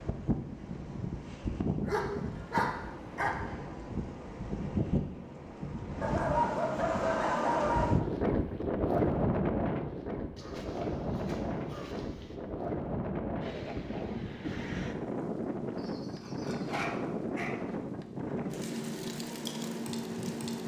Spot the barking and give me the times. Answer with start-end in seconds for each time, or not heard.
1.9-3.4, 6.0-8.0, 10.3-12.3, 15.8-17.6.